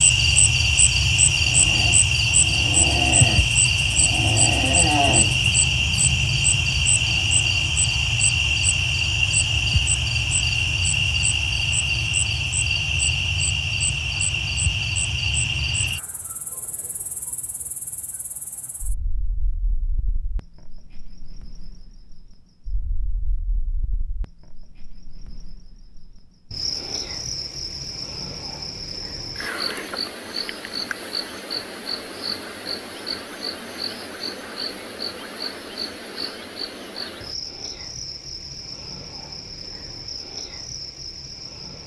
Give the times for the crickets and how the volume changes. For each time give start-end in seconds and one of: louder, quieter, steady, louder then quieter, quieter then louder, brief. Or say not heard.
0.0-41.8 quieter then louder.